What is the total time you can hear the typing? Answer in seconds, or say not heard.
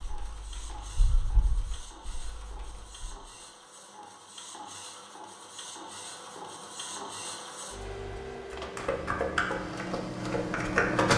6 s.